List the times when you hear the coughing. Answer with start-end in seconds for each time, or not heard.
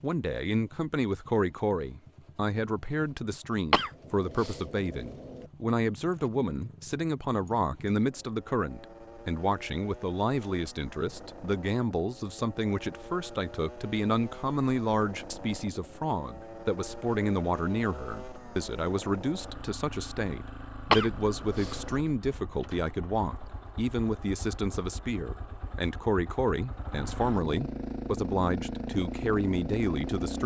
3.7-5.5, 20.9-22.0.